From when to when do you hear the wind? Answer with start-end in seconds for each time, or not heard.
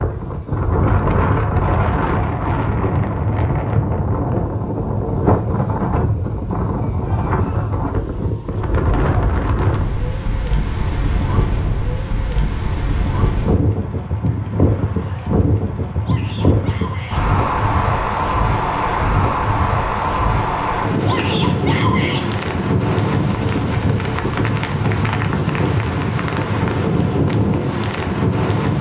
0.0-28.7.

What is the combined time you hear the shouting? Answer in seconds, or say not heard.
3 s.